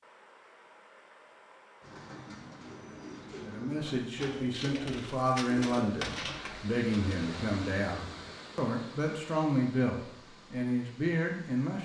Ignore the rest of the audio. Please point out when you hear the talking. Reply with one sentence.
The talking can be heard from 3.4 to 11.7 s.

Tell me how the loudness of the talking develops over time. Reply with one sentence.
The loudness of the talking stays about the same.